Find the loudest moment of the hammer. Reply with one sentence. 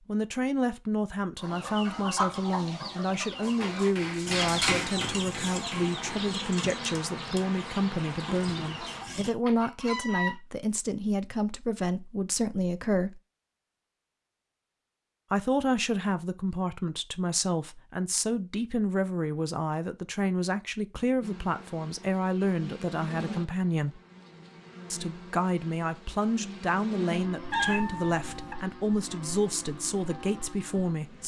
The loudest moment of the hammer is at 5 seconds.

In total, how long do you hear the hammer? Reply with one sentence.
The hammer can be heard for 3 seconds in total.